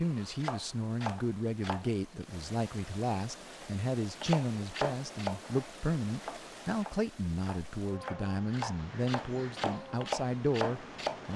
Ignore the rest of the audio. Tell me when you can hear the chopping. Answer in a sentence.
You can hear the chopping from 0.0 to 2.2 s and from 4.2 to 11.3 s.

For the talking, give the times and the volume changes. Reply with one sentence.
The talking can be heard from 0.0 to 11.3 s, at a steady volume.